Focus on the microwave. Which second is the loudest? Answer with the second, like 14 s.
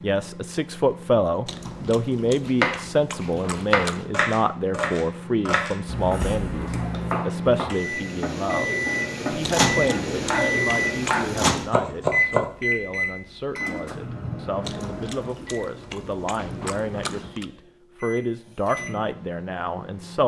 10 s.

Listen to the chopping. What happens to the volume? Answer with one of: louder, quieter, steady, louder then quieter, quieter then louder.
quieter then louder.